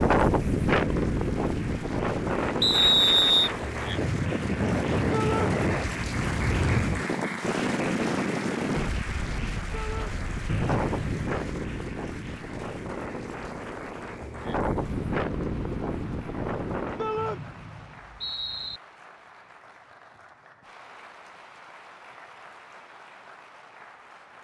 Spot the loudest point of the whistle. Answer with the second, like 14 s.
3 s.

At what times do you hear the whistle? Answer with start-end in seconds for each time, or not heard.
2.6-3.5, 10.4-11.2, 17.1-18.8.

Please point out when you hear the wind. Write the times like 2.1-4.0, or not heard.
0.0-17.2.